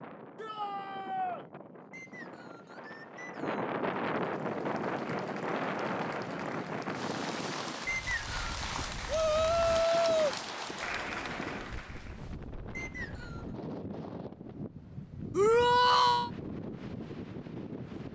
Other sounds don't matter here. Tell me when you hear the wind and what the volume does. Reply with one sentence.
The wind can be heard from 0.0 to 18.1 s, getting louder then quieter.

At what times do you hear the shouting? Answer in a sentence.
You can hear the shouting from 0.3 to 1.4 s, from 9.1 to 10.3 s and from 15.3 to 16.3 s.